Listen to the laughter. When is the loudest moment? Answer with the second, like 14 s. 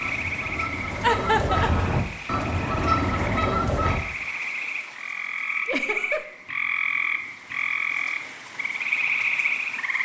1 s.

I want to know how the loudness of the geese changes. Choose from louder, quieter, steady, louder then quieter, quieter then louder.
louder.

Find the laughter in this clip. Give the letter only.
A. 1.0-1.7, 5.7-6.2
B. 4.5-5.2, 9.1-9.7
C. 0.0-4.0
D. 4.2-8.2
A.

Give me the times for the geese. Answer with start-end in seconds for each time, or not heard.
0.0-4.0.